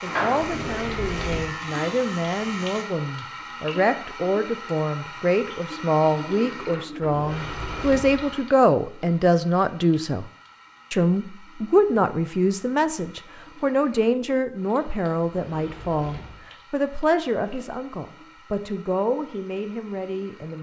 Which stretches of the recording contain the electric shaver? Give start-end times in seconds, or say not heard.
0.0-2.9.